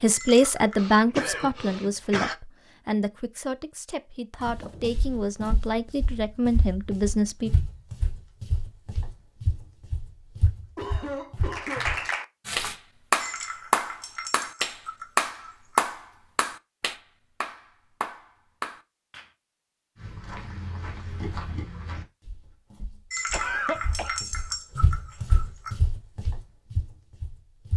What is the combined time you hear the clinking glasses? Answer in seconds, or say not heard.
6 s.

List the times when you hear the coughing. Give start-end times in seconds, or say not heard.
0.8-2.4, 10.8-11.8, 23.3-24.2.